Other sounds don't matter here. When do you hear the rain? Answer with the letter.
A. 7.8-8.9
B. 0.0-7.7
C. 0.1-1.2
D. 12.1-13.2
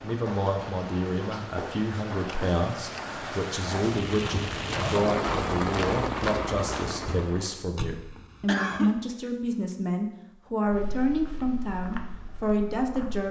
B.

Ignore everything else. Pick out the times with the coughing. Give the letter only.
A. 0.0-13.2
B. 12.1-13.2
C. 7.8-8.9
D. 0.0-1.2
C.